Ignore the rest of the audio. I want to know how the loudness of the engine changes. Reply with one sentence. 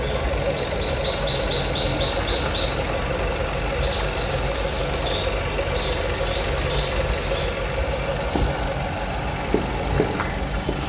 The volume of the engine stays about the same.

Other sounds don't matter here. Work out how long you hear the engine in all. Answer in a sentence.
You can hear the engine for 11 seconds altogether.